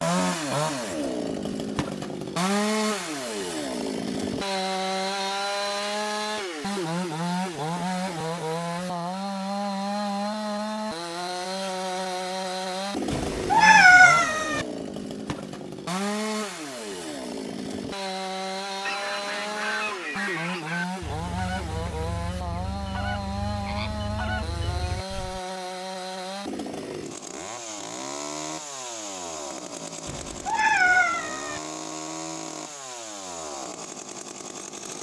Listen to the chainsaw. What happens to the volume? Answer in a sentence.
The loudness of the chainsaw goes down.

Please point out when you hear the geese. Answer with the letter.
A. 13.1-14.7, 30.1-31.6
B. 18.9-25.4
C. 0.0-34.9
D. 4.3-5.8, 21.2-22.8
B.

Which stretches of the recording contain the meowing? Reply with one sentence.
You can hear the meowing from 13.1 to 14.7 s and from 30.1 to 31.6 s.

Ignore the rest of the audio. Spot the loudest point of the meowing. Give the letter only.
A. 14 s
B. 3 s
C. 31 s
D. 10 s
A.